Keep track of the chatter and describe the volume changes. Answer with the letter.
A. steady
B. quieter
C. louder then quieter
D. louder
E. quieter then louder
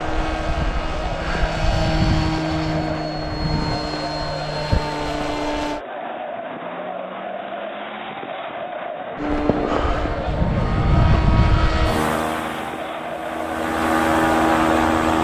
A.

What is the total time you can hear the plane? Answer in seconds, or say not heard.
12 s.